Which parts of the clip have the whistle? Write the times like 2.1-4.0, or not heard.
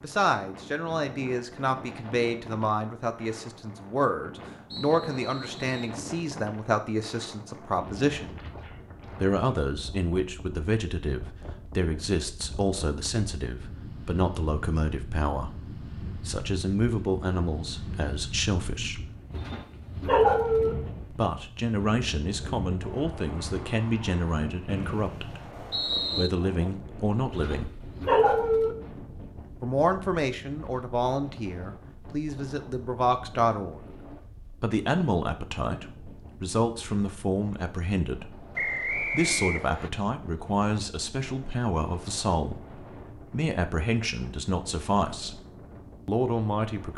4.7-6.0, 24.6-26.3, 38.5-39.9.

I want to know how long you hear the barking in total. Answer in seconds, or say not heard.
3 s.